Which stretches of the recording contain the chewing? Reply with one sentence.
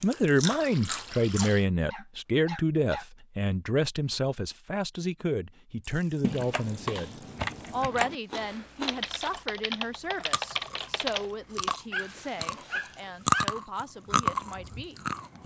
You can hear the chewing from 0.0 to 1.6 s, from 8.3 to 9.4 s and from 10.2 to 15.4 s.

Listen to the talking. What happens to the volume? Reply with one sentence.
The volume of the talking goes down.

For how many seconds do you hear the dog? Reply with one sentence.
You can hear the dog for 3 seconds altogether.